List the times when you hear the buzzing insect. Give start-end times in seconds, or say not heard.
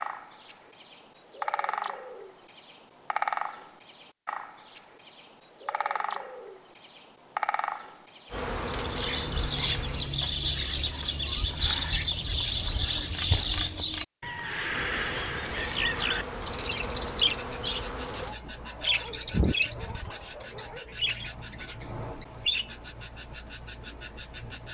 8.3-10.1, 14.7-18.4.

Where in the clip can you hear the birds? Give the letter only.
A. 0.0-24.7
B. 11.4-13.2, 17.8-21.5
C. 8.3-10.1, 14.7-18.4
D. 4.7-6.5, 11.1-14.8
A.